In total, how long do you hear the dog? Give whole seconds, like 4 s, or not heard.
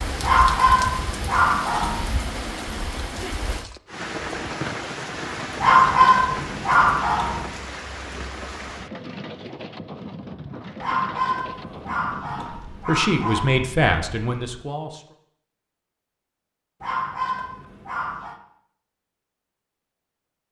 8 s.